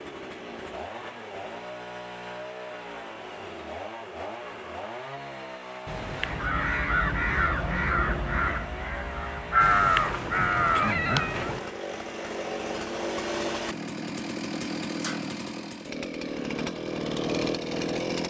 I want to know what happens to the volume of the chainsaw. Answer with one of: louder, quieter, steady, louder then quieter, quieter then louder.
louder.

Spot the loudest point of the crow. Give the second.
10 s.